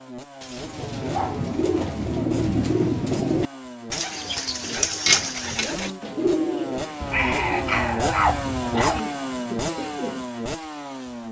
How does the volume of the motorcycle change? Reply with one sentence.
The loudness of the motorcycle goes up.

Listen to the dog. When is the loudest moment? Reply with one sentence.
The volume of the dog peaks at 8 seconds.